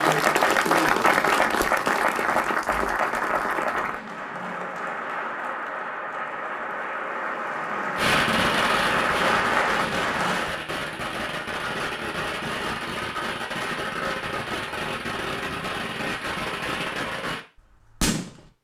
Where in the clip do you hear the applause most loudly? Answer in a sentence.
The loudest moment of the applause is at 1 second.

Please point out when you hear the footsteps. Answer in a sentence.
The footsteps can't be heard in this clip.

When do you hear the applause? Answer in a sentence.
The applause can be heard from 0.0 to 10.6 s.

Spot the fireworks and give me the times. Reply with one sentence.
The fireworks can be heard from 8.0 to 18.5 s.